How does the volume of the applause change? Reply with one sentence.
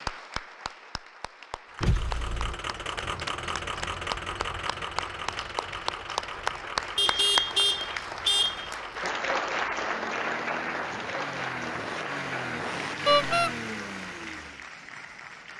The loudness of the applause goes up, then down.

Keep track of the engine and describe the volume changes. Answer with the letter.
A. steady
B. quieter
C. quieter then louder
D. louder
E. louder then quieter
C.